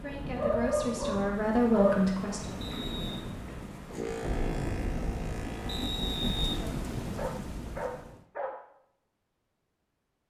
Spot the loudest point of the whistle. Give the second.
6 s.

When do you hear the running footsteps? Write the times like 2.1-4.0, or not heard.
not heard.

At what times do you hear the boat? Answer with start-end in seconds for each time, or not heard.
3.9-6.7.